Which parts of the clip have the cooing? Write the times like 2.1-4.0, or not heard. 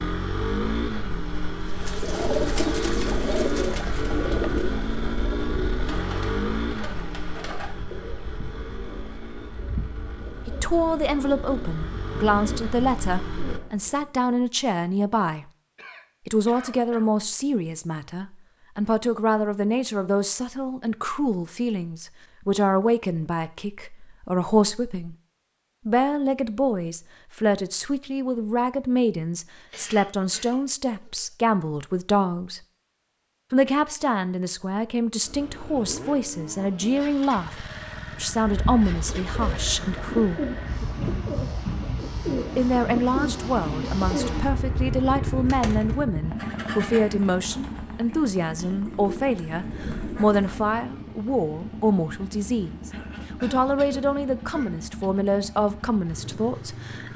1.6-14.1, 38.4-50.7.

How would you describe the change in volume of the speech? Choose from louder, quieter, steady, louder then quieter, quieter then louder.
steady.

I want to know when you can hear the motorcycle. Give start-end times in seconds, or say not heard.
0.0-13.6, 35.2-57.1.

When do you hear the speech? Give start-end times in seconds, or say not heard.
10.4-15.4, 16.2-25.1, 25.9-32.6, 33.5-40.4, 42.5-57.1.